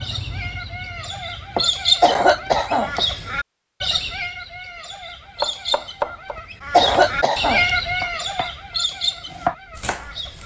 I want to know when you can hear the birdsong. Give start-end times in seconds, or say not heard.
0.0-10.4.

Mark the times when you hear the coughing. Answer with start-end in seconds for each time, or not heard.
2.0-3.0, 6.7-7.7.